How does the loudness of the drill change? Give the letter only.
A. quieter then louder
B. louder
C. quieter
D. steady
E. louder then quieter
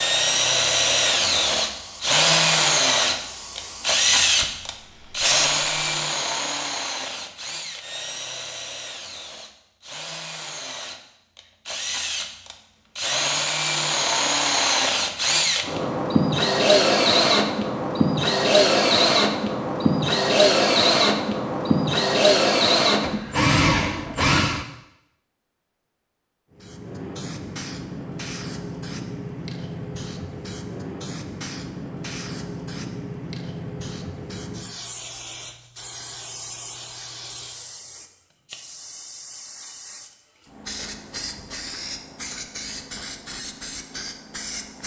A.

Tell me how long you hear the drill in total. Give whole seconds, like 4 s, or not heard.
25 s.